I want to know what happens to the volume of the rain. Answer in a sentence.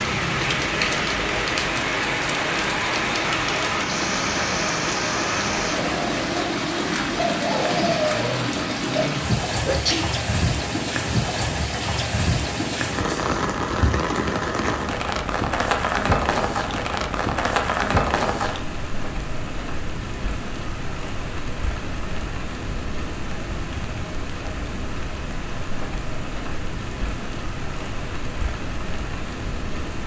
The loudness of the rain goes down.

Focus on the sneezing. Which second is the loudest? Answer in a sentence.
The volume of the sneezing peaks at 10 seconds.